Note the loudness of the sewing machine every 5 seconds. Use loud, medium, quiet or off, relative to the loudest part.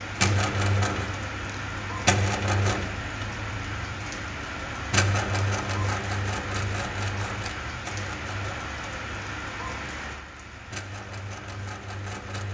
loud, loud, medium.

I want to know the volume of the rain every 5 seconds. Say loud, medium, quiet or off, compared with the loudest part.
loud, loud, medium.